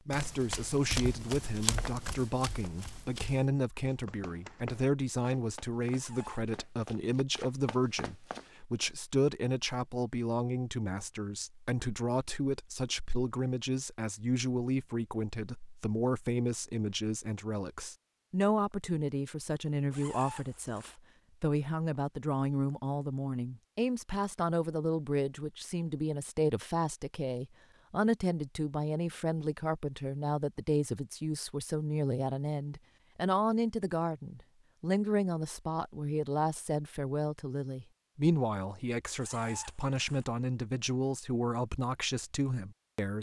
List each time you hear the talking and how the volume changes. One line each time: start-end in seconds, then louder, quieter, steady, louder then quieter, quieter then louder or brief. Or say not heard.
0.1-43.1 steady.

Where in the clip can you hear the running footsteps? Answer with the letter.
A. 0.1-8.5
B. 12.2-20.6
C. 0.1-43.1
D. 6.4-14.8
A.